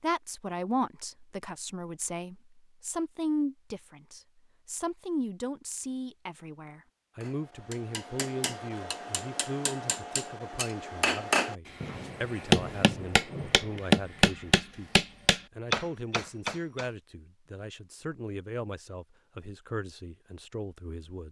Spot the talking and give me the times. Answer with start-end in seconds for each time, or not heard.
0.0-21.2.